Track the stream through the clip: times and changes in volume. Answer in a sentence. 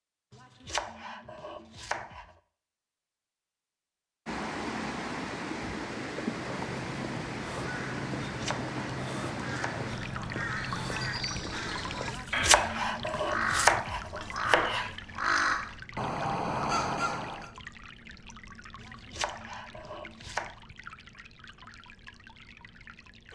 The stream can be heard from 4.2 to 23.3 s, getting quieter.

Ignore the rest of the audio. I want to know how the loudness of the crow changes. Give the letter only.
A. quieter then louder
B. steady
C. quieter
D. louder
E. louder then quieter
D.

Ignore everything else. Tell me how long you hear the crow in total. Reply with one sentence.
The crow can be heard for 11 seconds in total.